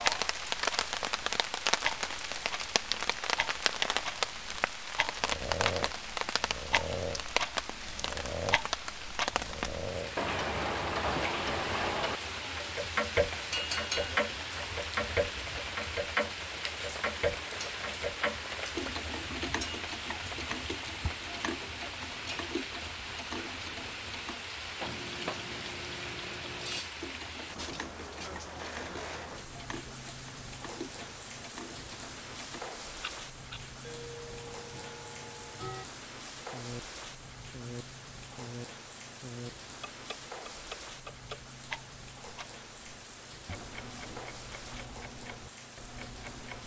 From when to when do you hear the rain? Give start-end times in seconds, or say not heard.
0.0-46.6.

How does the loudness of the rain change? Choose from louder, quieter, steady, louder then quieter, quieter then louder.
quieter.